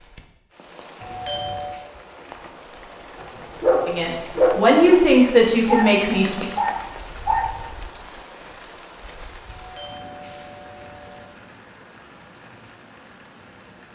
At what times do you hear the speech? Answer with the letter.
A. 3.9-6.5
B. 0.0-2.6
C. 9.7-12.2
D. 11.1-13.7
A.